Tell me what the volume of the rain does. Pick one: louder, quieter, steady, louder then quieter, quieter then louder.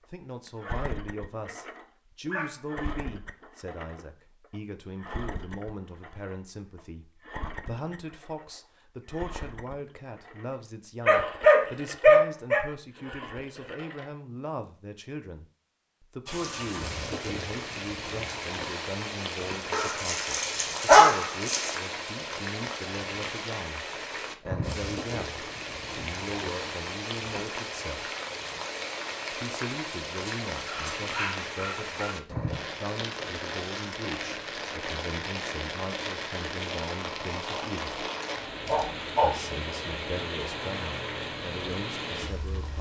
steady.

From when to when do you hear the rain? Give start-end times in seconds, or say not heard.
16.2-42.7.